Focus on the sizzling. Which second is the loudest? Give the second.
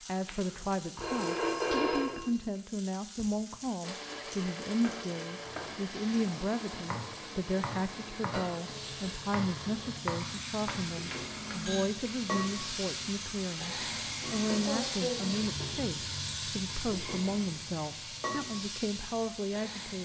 15 s.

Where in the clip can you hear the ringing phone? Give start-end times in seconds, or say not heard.
0.2-2.2, 10.7-11.9.